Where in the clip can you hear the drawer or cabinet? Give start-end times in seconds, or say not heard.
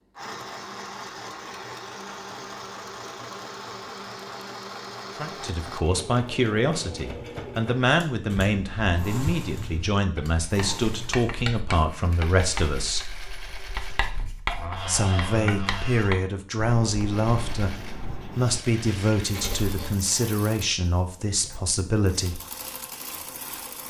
14.4-16.2.